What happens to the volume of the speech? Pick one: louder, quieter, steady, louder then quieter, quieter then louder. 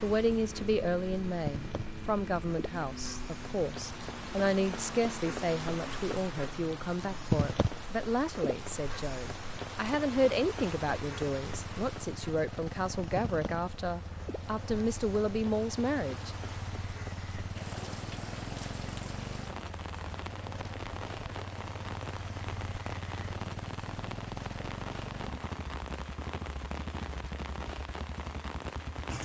steady.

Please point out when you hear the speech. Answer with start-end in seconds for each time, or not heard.
0.0-16.4.